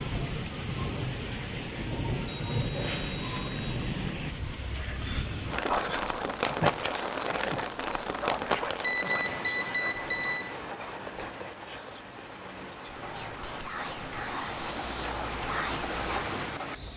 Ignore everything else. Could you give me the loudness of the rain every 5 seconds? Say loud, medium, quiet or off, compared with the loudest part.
loud, loud, medium, loud.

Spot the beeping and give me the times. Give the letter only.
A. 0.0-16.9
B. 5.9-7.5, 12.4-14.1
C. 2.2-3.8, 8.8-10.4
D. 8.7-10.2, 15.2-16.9
C.